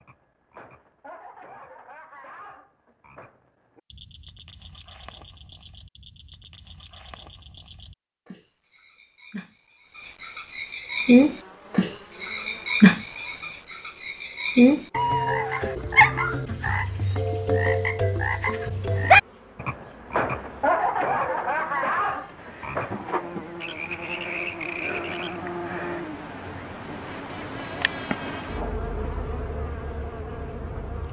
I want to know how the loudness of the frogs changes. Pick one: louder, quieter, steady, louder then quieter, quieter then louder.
louder then quieter.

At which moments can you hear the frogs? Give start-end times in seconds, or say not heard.
0.0-25.4.